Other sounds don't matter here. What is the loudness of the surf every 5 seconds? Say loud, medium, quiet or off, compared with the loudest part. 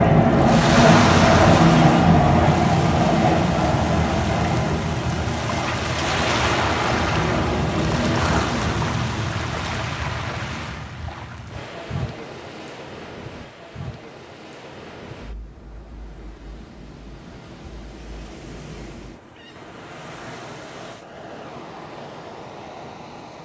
loud, loud, medium, quiet, quiet.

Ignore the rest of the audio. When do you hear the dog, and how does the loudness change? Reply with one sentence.
The dog can't be heard in this clip.